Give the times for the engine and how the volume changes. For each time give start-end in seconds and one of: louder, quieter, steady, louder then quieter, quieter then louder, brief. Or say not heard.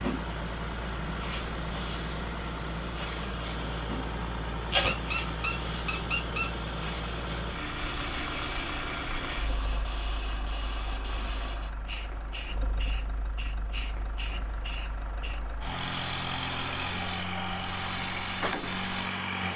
0.0-19.5 quieter then louder.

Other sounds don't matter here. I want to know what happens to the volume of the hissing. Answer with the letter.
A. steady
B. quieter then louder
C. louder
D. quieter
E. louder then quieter
A.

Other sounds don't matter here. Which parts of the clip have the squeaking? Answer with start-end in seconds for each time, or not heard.
4.7-6.5.